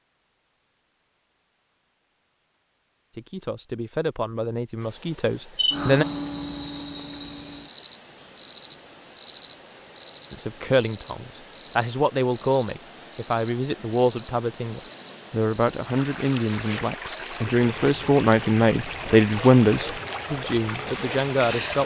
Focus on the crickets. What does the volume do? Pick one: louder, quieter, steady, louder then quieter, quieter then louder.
quieter.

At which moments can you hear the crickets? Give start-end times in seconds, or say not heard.
5.5-21.8.